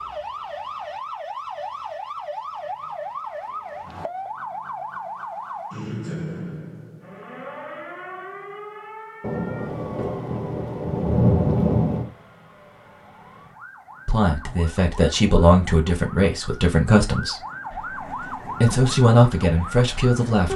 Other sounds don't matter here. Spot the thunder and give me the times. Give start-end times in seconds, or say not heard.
9.2-12.1.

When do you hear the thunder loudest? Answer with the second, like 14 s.
11 s.